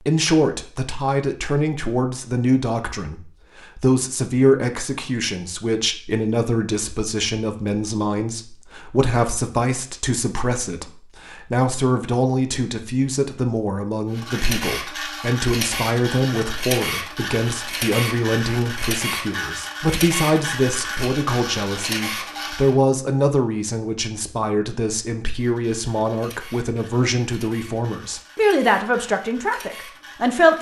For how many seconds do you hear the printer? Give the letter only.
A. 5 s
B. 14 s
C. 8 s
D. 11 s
B.